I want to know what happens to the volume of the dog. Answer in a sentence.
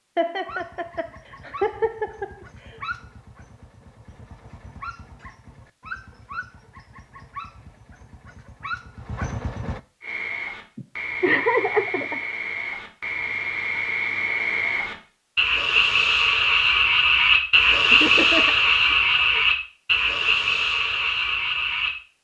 The loudness of the dog goes up.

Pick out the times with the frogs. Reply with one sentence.
You can hear the frogs from 10.0 to 21.9 s.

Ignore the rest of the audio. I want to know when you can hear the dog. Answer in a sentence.
You can hear the dog from 0.5 to 9.8 s.